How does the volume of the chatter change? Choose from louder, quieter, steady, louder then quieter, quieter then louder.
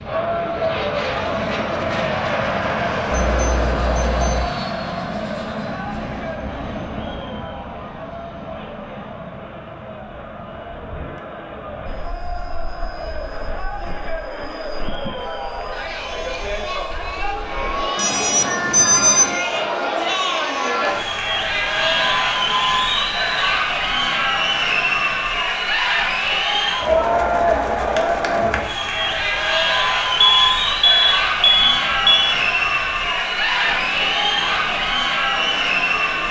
quieter then louder.